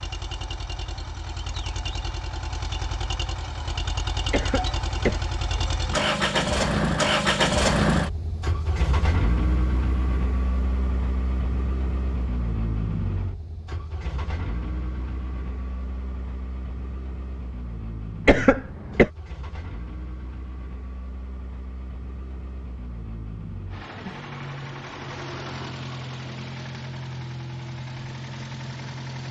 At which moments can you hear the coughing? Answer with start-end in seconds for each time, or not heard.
4.3-5.8, 18.2-19.1.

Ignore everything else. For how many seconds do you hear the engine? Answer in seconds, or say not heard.
29 s.